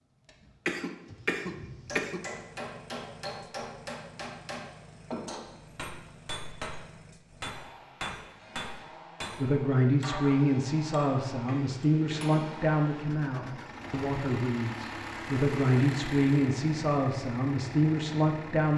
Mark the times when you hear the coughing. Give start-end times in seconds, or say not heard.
0.7-2.2, 11.4-12.3.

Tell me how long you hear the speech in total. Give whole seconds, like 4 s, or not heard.
9 s.